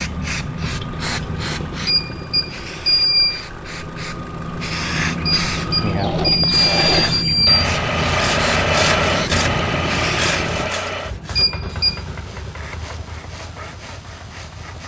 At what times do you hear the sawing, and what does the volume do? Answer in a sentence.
The sawing can be heard from 8.1 to 14.8 s, getting quieter.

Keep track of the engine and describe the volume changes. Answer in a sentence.
The loudness of the engine goes up, then down.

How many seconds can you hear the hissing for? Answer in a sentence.
The hissing can be heard for 11 seconds in total.